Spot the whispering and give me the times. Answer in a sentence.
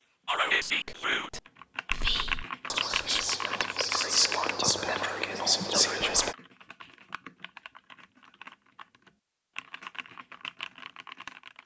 The whispering can be heard from 0.2 to 6.3 s.